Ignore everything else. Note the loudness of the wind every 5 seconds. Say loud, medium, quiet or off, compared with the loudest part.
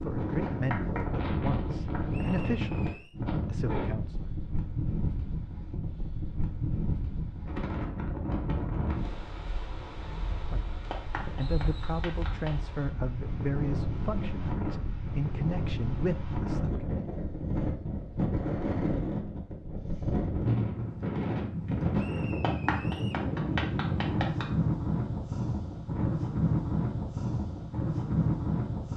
loud, medium, medium, loud, loud, loud.